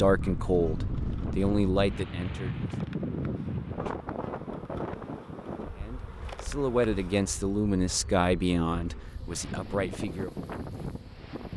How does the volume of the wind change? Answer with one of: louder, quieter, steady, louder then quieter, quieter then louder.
quieter then louder.